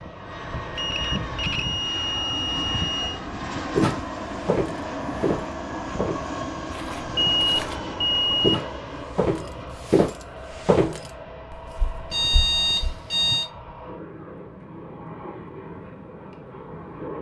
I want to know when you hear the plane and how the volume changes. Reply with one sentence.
You can hear the plane from 0.0 to 17.1 s, getting quieter.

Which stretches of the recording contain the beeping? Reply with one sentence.
The beeping can be heard from 0.8 to 3.2 s, from 7.2 to 8.7 s and from 12.1 to 13.5 s.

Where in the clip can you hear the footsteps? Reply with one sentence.
The footsteps can be heard from 3.8 to 12.9 s.